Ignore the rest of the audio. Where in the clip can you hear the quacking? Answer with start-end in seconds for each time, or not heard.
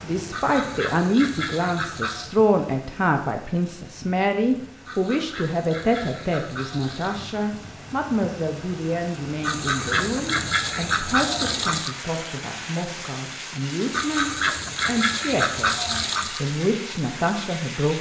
0.3-2.2, 4.8-7.3, 9.4-11.9, 13.9-16.4.